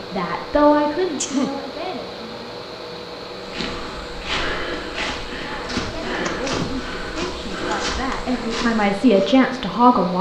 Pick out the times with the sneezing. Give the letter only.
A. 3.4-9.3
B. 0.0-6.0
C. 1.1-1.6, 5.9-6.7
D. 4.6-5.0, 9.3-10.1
C.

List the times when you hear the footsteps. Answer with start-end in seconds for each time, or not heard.
3.4-9.3.